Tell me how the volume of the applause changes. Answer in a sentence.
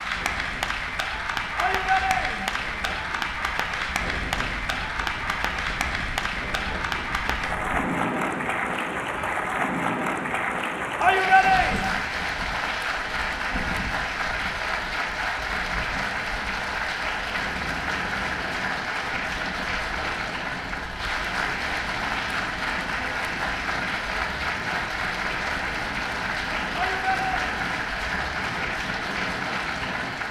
The loudness of the applause stays about the same.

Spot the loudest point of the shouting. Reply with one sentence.
The volume of the shouting peaks at 11 seconds.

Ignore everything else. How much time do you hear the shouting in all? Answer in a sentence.
You can hear the shouting for 3 seconds altogether.